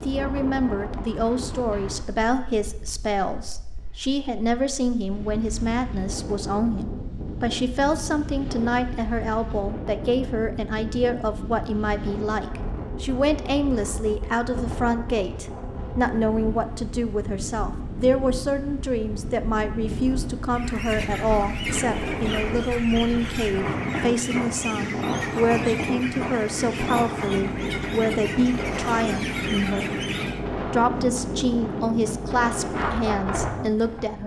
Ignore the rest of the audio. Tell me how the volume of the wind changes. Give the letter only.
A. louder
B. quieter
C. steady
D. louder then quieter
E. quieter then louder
A.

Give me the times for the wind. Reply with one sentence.
The wind can be heard from 0.0 to 34.2 s.